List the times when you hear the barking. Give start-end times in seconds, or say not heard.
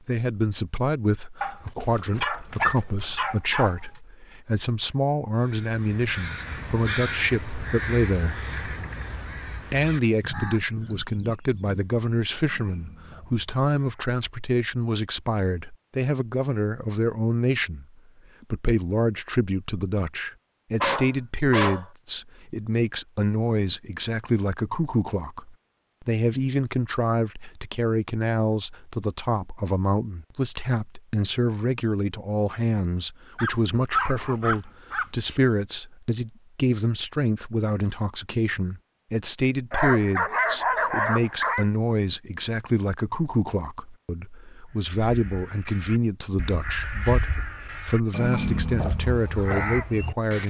1.4-3.9, 20.8-21.9, 33.4-35.4, 39.7-41.6.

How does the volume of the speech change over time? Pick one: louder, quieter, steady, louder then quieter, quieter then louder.
steady.